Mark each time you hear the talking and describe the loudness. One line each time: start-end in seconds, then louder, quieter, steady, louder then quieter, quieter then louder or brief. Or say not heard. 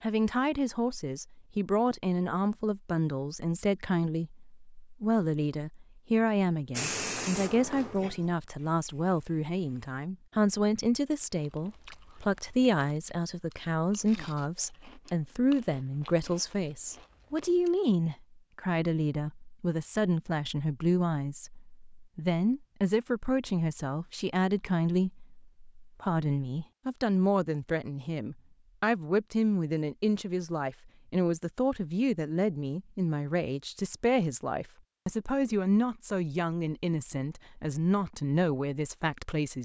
0.0-39.6 steady.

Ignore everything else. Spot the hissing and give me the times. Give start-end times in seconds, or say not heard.
6.7-9.9.